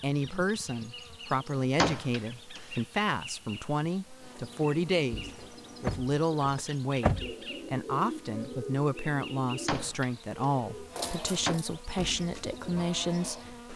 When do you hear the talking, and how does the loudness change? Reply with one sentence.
The talking can be heard from 0.0 to 13.7 s, at a steady volume.